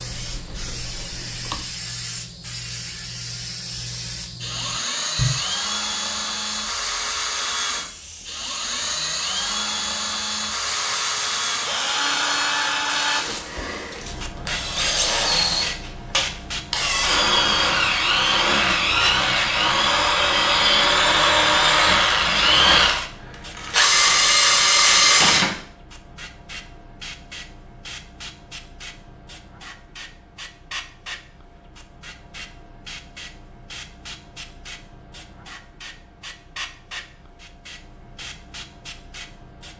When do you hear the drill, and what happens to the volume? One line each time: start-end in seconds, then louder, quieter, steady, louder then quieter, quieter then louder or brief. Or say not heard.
4.4-25.6 louder.